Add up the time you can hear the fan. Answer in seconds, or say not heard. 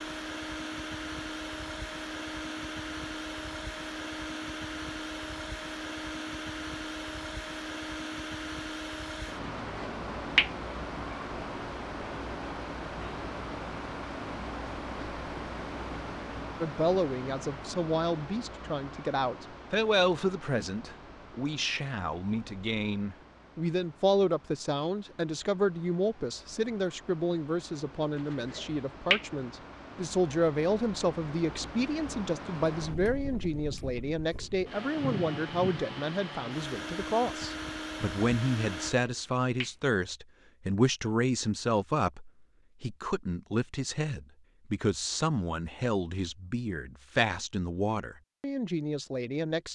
39 s.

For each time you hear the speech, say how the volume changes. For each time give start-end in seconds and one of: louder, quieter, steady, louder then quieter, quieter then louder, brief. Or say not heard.
16.6-49.7 steady.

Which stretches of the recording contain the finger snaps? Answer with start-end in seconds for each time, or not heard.
9.8-10.5, 28.3-29.2, 39.0-39.7.